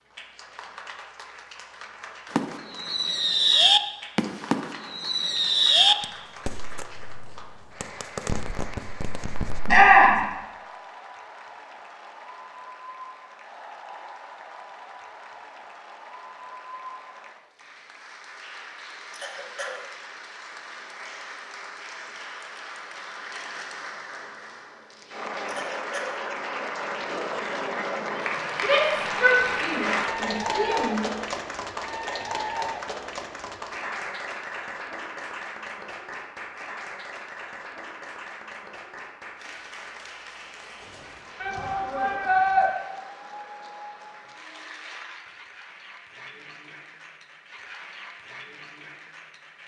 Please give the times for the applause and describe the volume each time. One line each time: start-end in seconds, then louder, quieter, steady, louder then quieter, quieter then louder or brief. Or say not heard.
0.0-49.6 louder then quieter.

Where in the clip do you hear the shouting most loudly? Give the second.
10 s.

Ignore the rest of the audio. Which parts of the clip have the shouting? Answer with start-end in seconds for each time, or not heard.
9.7-10.2, 28.6-31.1, 41.4-42.6.